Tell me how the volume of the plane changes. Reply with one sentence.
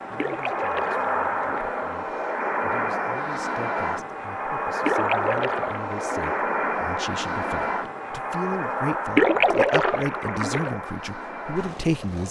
The volume of the plane goes down.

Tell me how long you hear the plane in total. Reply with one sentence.
The plane can be heard for 12 seconds in total.